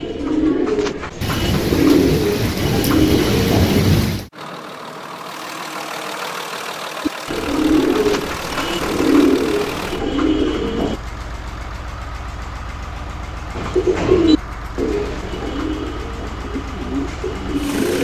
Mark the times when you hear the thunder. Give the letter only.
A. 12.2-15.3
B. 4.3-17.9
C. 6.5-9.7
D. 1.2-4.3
D.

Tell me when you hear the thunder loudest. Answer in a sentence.
The volume of the thunder peaks at 4 seconds.